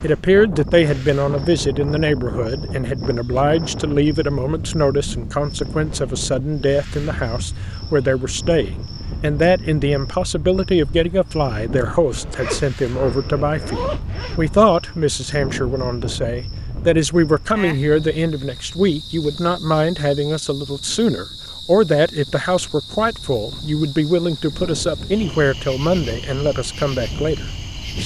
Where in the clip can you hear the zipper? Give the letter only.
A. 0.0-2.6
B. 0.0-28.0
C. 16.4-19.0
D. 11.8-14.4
D.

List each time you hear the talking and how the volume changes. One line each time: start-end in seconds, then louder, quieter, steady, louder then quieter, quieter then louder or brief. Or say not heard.
0.0-28.0 steady.